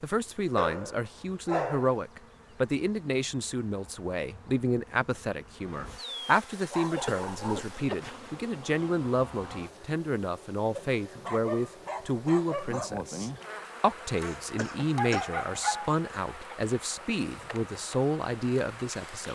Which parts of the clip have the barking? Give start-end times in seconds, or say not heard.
0.6-2.0, 6.2-7.8, 10.8-12.9, 14.9-16.6.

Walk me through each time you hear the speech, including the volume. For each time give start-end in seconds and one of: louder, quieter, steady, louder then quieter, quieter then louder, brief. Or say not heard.
0.0-19.3 steady.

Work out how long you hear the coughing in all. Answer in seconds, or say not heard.
2 s.